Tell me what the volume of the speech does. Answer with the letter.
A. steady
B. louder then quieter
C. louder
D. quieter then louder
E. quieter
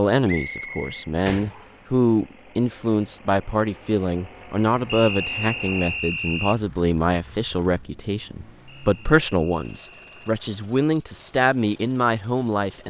A.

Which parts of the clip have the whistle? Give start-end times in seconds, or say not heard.
0.2-1.8, 4.8-6.6, 8.7-10.3.